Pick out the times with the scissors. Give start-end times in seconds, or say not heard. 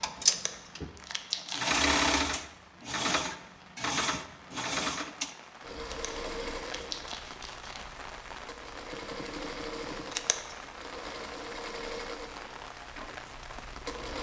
0.2-1.8, 5.8-7.8, 10.1-10.6.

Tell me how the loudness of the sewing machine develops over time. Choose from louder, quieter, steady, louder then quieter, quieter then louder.
quieter.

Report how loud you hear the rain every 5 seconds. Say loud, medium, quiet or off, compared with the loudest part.
medium, loud, loud.